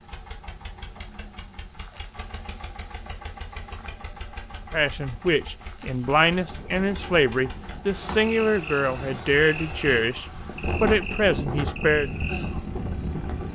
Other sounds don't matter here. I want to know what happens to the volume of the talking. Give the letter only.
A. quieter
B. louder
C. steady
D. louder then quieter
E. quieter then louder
C.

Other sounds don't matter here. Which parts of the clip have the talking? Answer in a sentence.
You can hear the talking from 4.7 to 12.1 s.